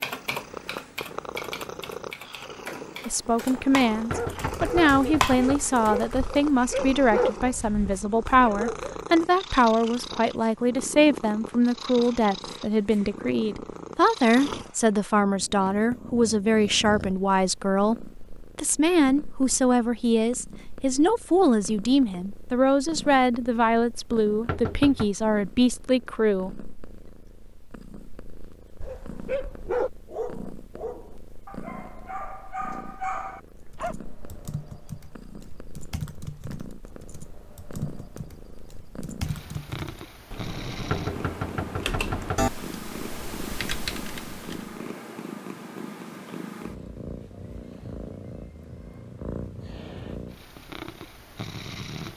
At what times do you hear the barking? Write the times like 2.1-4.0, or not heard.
4.0-8.9, 28.8-34.0.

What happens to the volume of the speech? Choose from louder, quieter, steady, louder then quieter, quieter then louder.
steady.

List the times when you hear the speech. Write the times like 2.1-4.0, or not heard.
3.0-26.7.